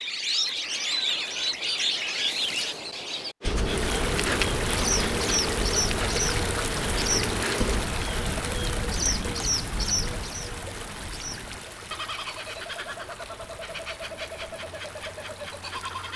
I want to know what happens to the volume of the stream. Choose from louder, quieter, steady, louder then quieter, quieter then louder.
quieter.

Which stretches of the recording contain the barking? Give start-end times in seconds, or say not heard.
not heard.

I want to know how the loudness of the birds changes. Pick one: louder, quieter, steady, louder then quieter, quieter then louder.
quieter.